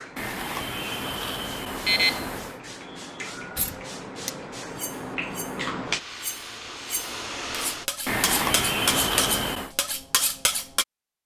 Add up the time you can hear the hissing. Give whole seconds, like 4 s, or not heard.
8 s.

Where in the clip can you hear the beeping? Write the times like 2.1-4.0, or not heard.
0.1-2.5, 8.1-9.7.